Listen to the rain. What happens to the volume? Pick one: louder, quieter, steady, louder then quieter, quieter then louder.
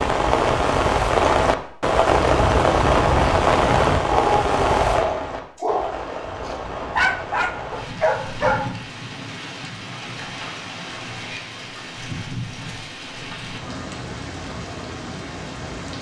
quieter.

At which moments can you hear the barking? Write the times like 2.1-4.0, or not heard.
2.0-8.8.